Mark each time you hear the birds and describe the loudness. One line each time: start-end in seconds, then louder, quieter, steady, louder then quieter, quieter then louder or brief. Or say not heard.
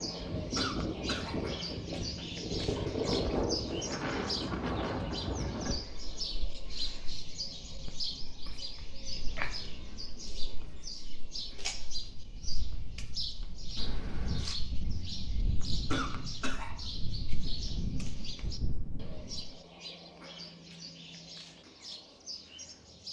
0.0-23.0 quieter.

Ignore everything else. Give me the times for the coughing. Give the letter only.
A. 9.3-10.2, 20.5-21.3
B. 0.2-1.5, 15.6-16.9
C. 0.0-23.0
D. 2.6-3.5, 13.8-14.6
B.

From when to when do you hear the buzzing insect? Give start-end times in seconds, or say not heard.
not heard.